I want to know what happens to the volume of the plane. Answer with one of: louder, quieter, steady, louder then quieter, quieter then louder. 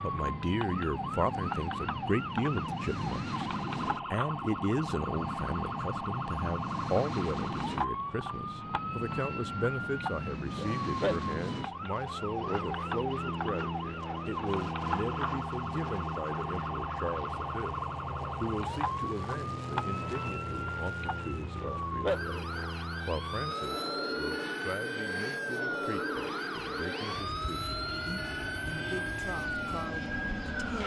steady.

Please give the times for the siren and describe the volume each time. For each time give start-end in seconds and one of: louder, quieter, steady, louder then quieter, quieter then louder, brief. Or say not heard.
0.0-30.8 steady.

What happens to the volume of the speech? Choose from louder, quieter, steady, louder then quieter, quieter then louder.
quieter.